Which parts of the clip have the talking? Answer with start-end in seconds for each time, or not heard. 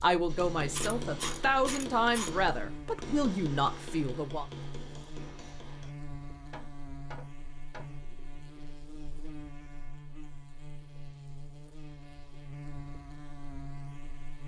0.0-4.5.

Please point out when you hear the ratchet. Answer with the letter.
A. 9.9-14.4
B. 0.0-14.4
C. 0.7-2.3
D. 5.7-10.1
C.